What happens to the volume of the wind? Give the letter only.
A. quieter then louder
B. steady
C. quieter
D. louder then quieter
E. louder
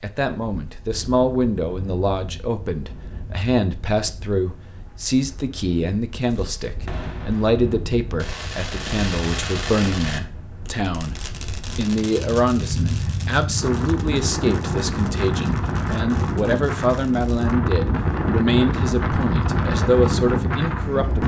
E.